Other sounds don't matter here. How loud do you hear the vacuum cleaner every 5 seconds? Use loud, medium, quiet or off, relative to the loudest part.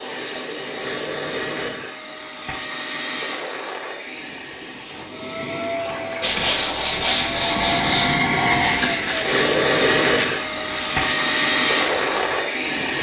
medium, loud, loud.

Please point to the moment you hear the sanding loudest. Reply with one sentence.
The volume of the sanding peaks at 7 seconds.